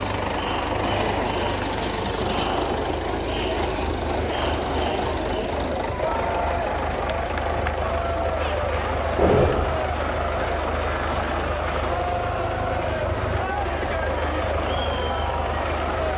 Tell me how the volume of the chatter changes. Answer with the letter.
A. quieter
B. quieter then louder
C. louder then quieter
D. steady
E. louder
D.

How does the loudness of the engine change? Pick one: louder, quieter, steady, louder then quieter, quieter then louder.
steady.